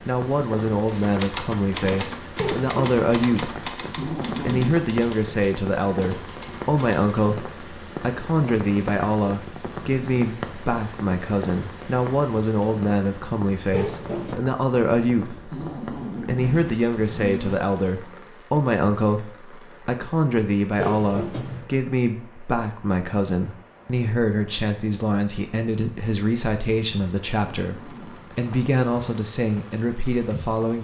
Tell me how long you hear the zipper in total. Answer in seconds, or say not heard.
4 s.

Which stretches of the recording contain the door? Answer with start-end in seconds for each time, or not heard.
2.4-3.0, 13.7-14.4, 20.8-21.7.